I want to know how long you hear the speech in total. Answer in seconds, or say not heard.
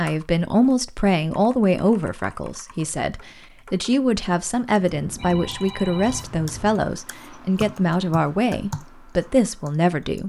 10 s.